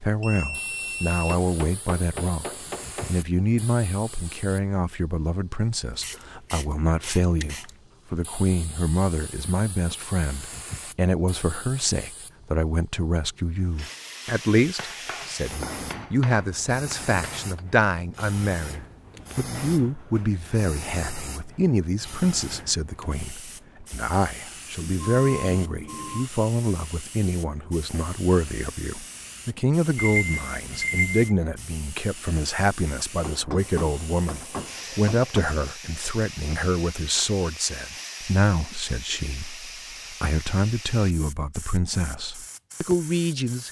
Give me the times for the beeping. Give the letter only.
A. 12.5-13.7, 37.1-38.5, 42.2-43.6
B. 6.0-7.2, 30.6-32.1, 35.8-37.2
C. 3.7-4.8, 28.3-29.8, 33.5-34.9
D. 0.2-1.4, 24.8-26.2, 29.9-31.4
D.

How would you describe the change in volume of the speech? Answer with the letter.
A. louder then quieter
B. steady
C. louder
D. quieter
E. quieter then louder
B.